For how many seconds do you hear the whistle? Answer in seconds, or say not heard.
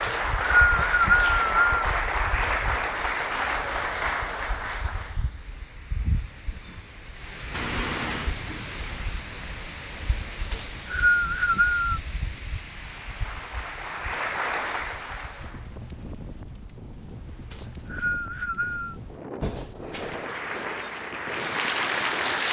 5 s.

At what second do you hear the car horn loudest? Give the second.
8 s.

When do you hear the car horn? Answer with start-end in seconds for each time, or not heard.
7.5-8.3, 19.4-20.2.